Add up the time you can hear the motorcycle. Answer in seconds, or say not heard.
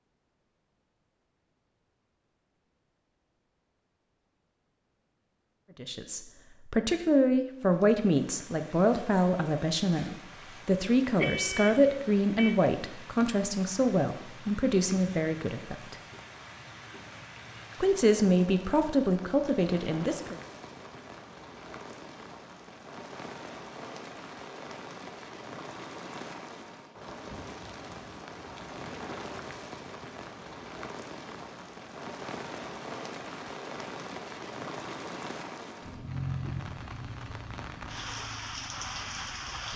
4 s.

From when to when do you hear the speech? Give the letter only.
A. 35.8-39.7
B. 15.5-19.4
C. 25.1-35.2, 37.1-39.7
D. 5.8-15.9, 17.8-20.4
D.